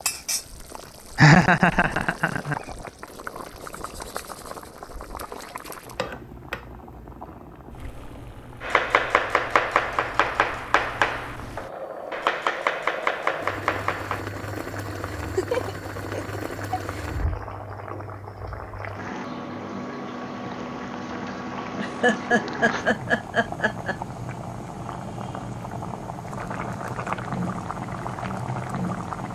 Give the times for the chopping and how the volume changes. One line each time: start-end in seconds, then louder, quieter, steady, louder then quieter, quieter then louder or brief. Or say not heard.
8.6-14.2 steady.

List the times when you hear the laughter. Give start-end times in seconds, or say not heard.
1.1-2.6, 15.1-17.1, 21.8-23.9.